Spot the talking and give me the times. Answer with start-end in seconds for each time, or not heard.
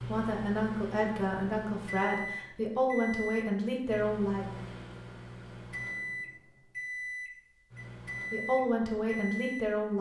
0.0-4.5, 8.3-9.9.